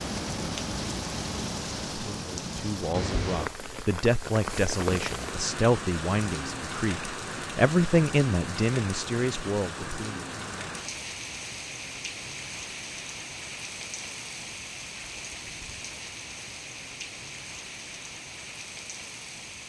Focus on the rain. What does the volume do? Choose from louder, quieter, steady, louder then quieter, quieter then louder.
quieter.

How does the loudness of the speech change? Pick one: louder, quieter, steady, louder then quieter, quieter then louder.
louder then quieter.